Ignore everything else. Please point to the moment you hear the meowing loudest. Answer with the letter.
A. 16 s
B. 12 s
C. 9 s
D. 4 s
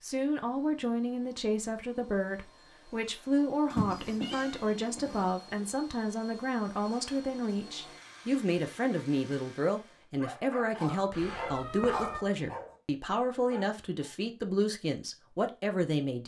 D.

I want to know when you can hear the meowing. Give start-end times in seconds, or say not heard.
3.7-5.3, 11.1-12.2.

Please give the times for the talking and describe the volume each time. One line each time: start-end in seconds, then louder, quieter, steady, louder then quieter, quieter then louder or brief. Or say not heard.
0.0-16.2 steady.